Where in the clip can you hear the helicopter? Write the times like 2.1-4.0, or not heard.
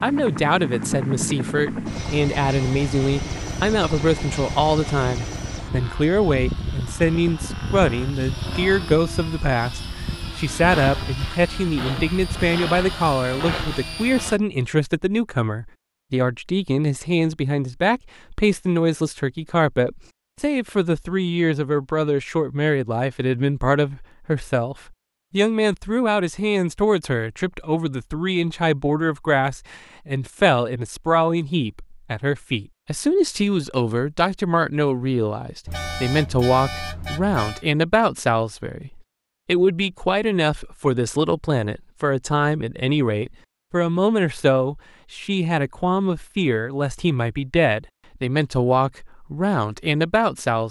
0.0-14.4.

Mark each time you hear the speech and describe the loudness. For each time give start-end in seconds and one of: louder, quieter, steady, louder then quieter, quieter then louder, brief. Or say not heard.
0.0-50.6 steady.